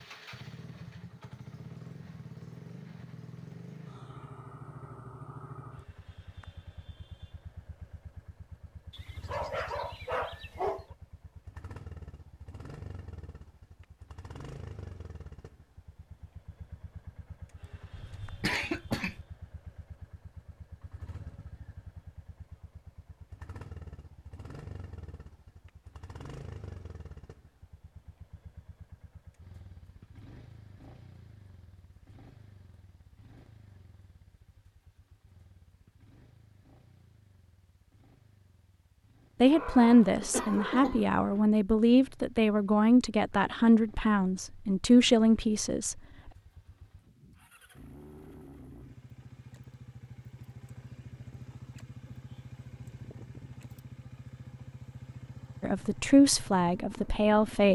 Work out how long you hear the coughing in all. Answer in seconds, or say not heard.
2 s.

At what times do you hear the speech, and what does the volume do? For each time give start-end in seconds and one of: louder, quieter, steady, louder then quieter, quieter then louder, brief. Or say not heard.
39.4-46.0 steady
55.6-57.7 brief.